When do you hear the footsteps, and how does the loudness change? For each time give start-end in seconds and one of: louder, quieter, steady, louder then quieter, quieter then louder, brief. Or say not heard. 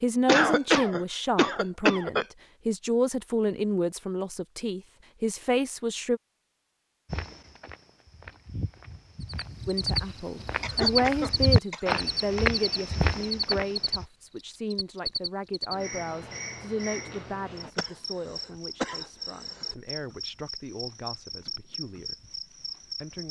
7.0-14.1 louder.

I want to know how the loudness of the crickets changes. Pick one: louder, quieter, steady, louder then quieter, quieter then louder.
quieter.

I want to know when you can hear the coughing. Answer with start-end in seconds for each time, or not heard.
0.2-2.2, 10.6-12.1, 17.8-19.8.